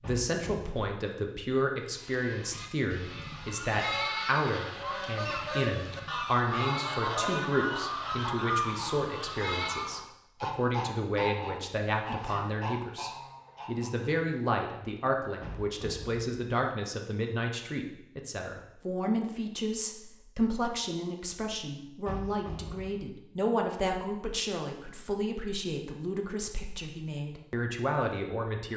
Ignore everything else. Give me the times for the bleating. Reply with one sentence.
You can hear the bleating from 1.9 to 9.9 s.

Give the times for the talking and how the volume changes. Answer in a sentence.
The talking can be heard from 0.0 to 28.7 s, at a steady volume.